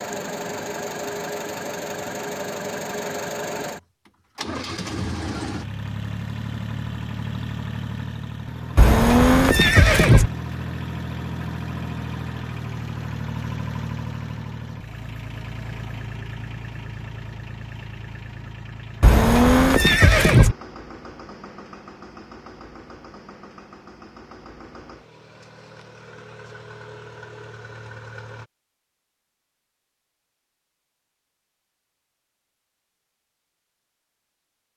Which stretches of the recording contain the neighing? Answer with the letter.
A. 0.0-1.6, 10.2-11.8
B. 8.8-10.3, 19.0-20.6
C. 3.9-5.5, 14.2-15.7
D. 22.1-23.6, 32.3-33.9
B.